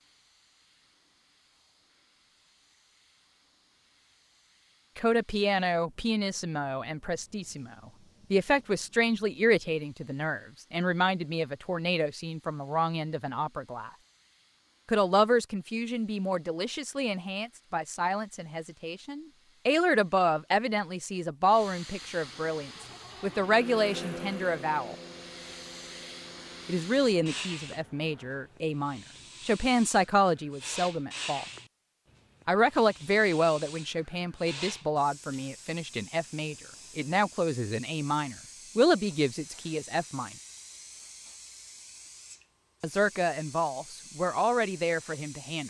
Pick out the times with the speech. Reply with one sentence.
The speech can be heard from 5.0 to 13.9 s, from 14.8 to 24.9 s, from 26.6 to 31.4 s, from 32.5 to 40.3 s and from 42.8 to 45.6 s.